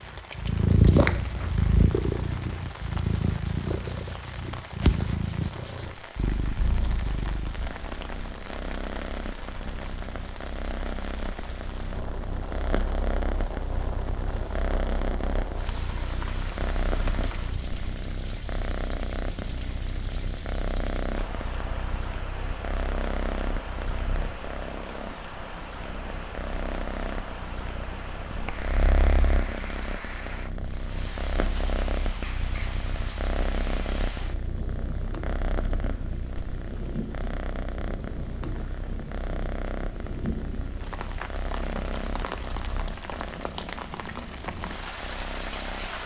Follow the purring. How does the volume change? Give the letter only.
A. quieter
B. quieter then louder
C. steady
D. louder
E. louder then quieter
A.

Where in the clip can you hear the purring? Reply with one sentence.
The purring can be heard from 0.0 to 46.0 s.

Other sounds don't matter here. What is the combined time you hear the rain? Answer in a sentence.
The rain can be heard for 46 seconds in total.